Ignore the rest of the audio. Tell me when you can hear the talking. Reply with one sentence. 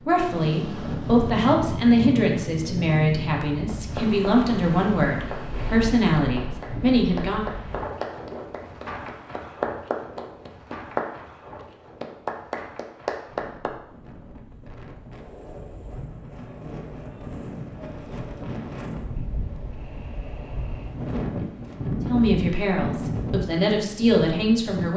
The talking can be heard from 0.0 to 7.5 s and from 22.1 to 24.9 s.